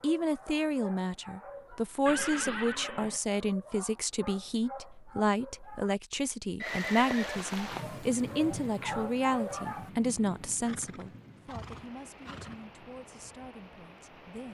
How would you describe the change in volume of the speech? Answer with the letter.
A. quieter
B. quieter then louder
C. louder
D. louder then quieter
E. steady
A.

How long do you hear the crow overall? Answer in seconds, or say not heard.
not heard.